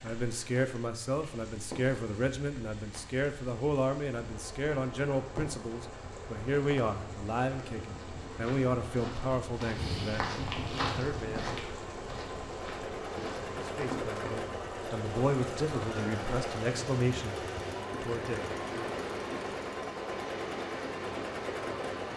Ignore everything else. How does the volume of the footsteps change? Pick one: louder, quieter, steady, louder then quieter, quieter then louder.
louder then quieter.